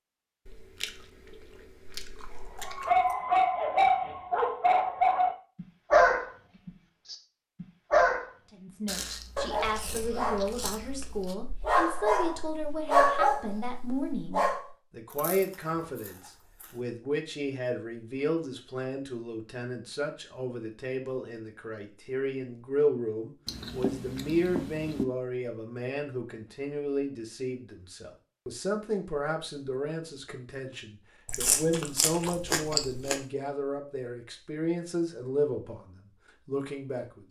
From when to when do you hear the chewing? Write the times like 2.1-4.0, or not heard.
0.5-3.1, 8.8-11.3, 15.1-16.8, 23.4-25.1, 31.2-33.2.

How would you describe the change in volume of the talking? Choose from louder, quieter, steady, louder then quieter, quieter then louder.
steady.